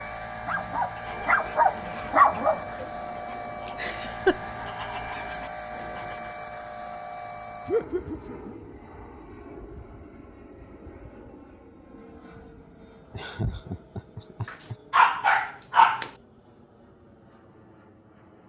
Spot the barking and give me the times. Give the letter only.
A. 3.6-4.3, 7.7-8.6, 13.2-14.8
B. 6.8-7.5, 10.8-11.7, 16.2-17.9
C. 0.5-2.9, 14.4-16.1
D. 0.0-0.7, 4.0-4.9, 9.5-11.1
C.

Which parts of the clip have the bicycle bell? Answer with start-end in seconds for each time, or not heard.
not heard.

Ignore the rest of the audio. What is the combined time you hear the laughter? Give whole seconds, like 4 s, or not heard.
3 s.